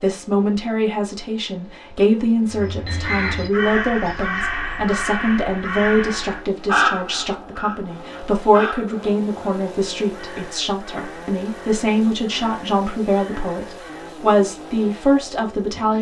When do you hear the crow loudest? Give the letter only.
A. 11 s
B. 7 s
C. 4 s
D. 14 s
B.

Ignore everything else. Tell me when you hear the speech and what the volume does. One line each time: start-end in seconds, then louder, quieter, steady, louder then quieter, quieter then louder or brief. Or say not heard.
0.0-15.9 steady.